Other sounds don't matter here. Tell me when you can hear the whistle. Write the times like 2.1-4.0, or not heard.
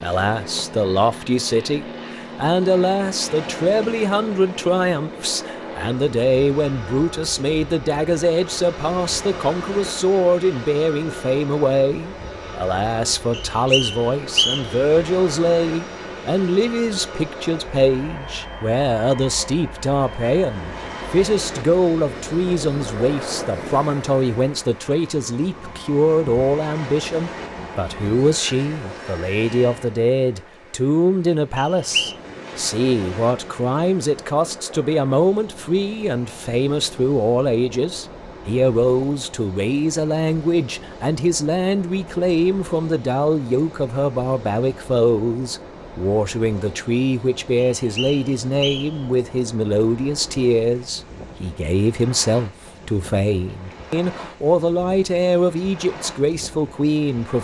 13.3-14.8, 31.6-32.1, 47.8-49.0.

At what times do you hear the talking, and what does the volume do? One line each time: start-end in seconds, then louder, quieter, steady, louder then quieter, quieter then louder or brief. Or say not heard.
0.0-57.4 steady.